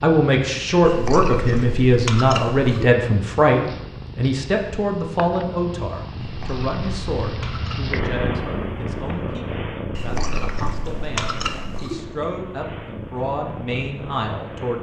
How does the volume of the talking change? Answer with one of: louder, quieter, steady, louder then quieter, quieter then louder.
quieter then louder.